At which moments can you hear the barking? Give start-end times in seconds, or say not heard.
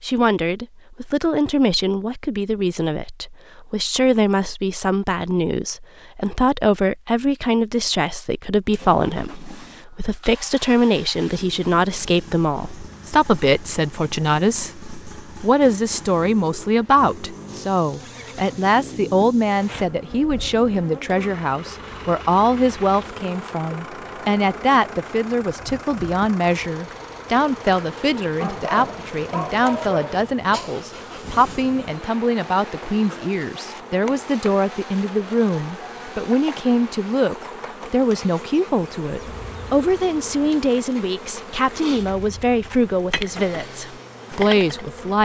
28.4-30.7.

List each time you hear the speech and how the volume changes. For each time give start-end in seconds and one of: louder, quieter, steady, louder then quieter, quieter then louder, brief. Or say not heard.
0.0-45.2 steady.